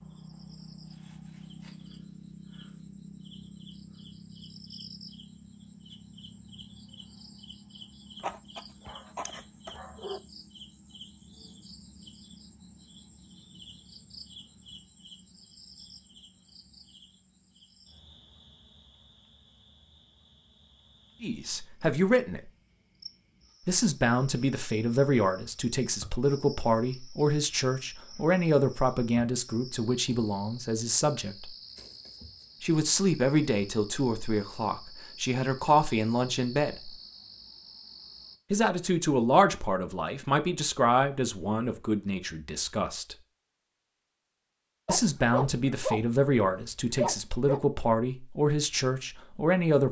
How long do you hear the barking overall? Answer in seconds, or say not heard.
5 s.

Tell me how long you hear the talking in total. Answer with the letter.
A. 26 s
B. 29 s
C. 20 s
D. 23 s
D.